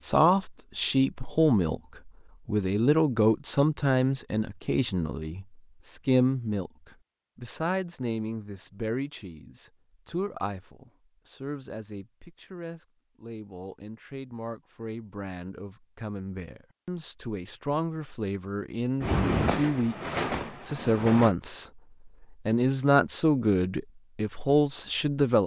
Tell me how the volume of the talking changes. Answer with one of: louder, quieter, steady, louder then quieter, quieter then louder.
quieter then louder.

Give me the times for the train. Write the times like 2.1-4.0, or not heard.
19.0-21.4.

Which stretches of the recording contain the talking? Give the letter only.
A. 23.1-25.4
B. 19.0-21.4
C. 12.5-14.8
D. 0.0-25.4
D.